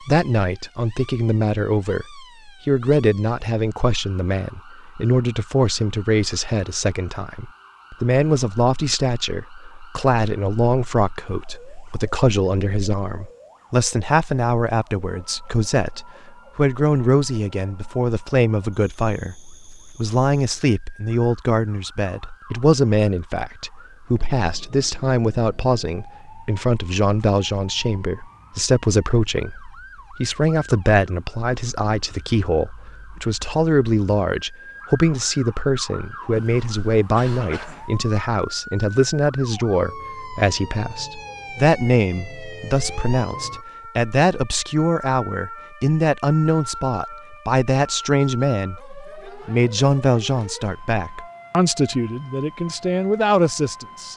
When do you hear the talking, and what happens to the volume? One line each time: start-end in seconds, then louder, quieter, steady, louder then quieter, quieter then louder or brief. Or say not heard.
0.1-54.1 steady.